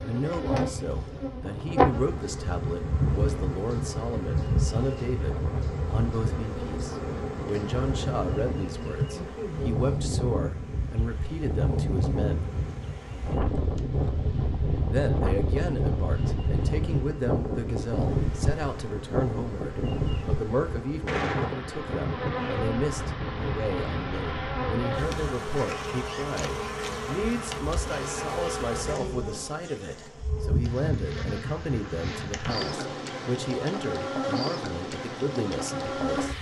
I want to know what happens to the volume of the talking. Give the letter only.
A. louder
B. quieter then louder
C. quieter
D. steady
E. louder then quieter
D.